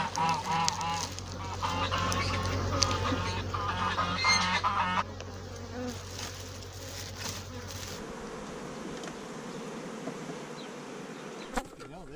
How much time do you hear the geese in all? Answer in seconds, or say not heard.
5 s.